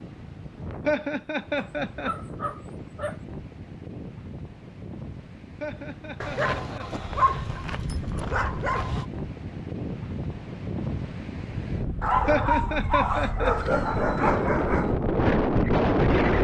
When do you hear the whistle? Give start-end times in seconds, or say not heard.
not heard.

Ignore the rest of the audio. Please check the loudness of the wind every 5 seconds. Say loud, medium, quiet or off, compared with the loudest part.
quiet, quiet, medium, loud.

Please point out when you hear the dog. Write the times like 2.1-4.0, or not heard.
1.6-3.2, 6.2-9.1, 12.0-14.9.